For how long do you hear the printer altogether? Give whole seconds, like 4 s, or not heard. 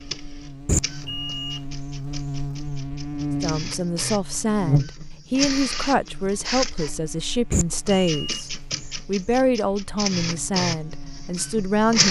12 s.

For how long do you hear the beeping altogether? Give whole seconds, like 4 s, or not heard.
2 s.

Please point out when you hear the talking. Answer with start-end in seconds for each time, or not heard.
3.4-12.0.